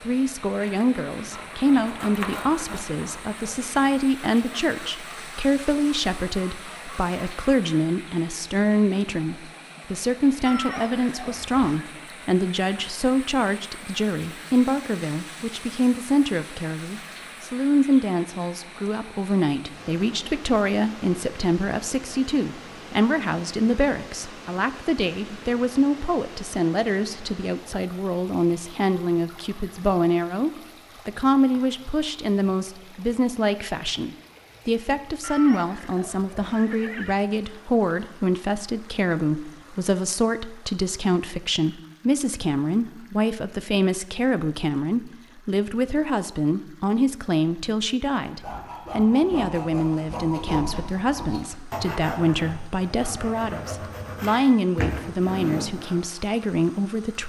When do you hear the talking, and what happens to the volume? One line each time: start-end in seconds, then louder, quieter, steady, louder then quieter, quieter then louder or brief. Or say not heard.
0.0-57.2 steady.